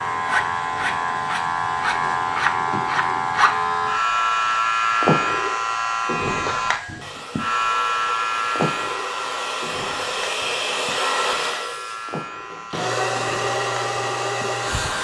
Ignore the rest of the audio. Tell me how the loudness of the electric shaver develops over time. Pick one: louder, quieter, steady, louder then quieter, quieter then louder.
quieter.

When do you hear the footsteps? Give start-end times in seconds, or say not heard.
not heard.